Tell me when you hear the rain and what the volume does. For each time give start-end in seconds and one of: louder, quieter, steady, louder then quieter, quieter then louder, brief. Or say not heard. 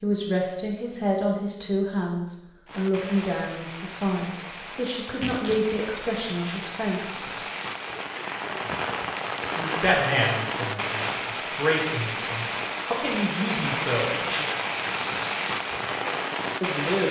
2.6-17.0 louder.